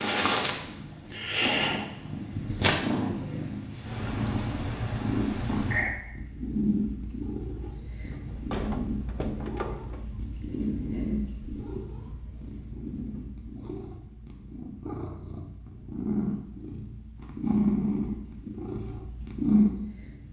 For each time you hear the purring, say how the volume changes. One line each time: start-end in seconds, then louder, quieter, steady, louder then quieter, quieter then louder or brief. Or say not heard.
0.0-20.2 quieter then louder.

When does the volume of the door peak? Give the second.
9 s.